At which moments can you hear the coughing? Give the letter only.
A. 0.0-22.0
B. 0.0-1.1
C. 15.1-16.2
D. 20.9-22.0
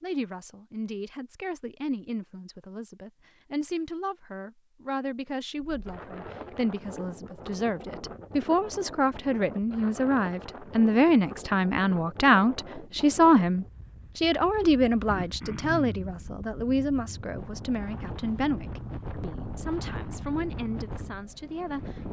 C.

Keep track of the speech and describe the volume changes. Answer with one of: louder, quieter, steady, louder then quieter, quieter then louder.
louder then quieter.